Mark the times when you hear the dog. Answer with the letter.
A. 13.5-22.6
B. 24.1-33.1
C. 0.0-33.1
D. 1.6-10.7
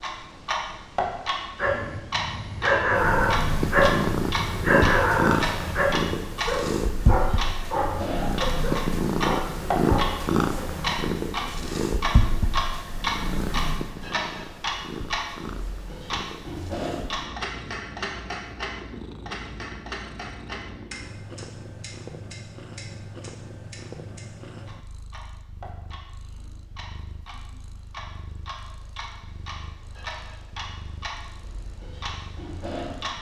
D.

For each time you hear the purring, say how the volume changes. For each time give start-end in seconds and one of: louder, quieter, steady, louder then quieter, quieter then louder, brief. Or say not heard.
2.9-33.1 quieter.